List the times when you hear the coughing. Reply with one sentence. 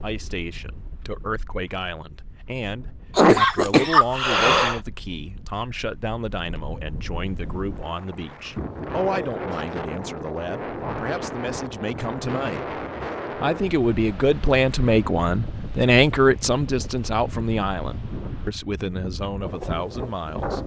You can hear the coughing from 3.1 to 4.8 s.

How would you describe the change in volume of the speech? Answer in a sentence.
The volume of the speech goes up, then down.